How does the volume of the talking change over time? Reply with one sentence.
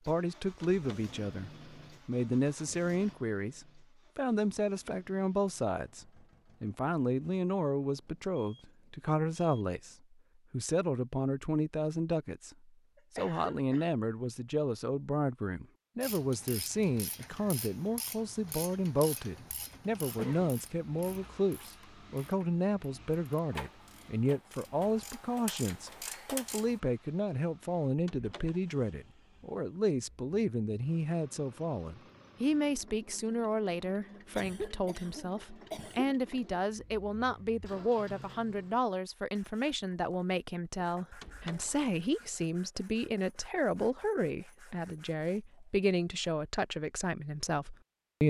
The volume of the talking stays about the same.